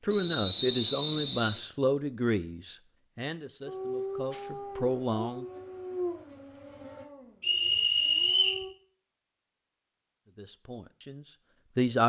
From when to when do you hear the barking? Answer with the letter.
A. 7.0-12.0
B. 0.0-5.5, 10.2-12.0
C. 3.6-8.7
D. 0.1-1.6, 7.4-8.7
C.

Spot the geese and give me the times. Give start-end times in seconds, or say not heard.
not heard.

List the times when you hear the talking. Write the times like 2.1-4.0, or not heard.
0.0-5.5, 10.2-12.0.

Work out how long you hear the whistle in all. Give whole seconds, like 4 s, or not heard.
3 s.